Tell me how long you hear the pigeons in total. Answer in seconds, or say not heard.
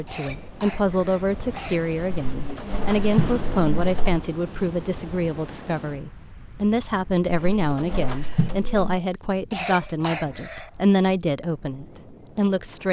4 s.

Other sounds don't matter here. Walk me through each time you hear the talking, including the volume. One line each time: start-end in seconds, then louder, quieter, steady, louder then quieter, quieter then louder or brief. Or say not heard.
0.0-12.8 steady.